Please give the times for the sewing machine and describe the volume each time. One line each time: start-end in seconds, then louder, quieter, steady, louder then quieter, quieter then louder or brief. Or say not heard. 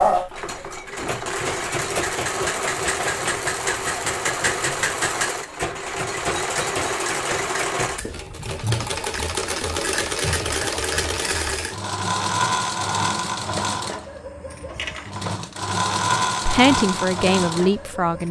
0.0-18.2 steady.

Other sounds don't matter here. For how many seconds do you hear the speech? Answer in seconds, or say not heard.
2 s.